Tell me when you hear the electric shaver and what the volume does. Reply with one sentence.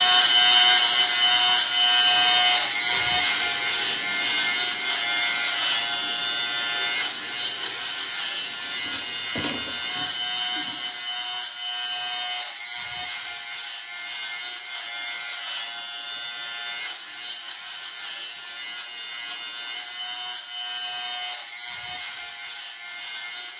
The electric shaver can be heard from 0.0 to 23.5 s, getting quieter.